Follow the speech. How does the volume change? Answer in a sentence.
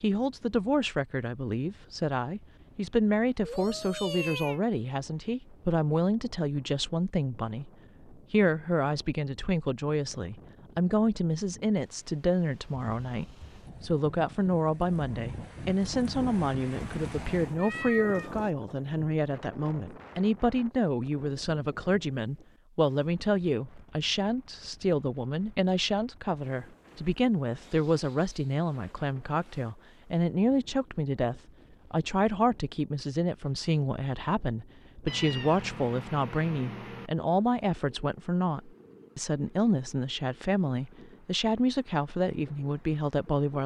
The loudness of the speech stays about the same.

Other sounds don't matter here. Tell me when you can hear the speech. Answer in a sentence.
The speech can be heard from 0.0 to 43.6 s.